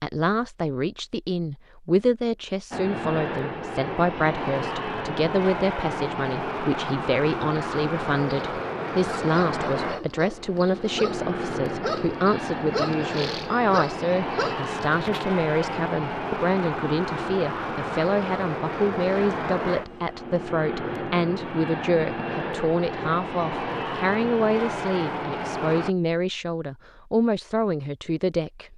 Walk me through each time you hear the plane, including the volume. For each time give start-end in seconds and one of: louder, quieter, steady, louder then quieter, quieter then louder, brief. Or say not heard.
2.7-25.9 steady.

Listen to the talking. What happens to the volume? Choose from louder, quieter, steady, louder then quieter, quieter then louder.
steady.